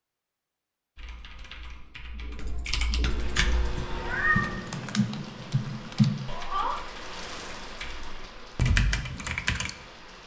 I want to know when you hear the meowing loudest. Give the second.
4 s.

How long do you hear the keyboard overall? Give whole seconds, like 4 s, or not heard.
9 s.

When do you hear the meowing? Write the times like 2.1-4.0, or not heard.
3.0-4.5.